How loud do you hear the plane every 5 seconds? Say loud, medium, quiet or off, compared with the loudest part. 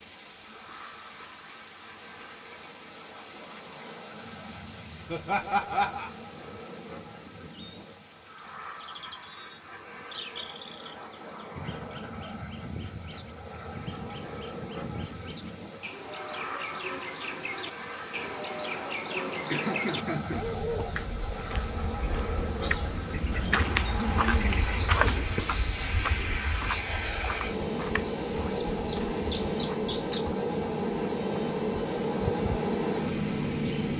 quiet, quiet, quiet, medium, medium, loud, loud.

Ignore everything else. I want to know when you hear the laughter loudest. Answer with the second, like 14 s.
6 s.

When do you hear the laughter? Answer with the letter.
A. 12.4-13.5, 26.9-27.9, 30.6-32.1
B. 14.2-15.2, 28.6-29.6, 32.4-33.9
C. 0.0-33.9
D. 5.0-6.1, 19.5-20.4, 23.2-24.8
D.